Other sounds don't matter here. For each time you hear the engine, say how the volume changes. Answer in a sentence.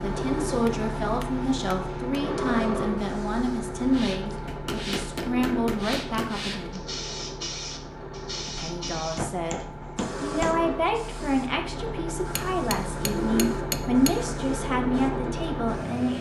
The engine can be heard from 0.0 to 16.1 s, getting quieter then louder.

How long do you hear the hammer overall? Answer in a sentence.
The hammer can be heard for 7 seconds in total.